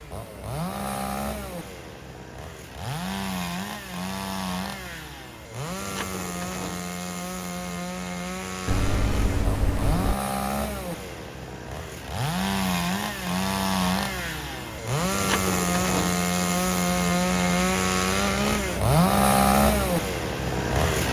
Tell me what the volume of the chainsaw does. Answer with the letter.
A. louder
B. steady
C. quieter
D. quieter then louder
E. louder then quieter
A.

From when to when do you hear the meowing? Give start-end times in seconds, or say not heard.
8.7-10.2.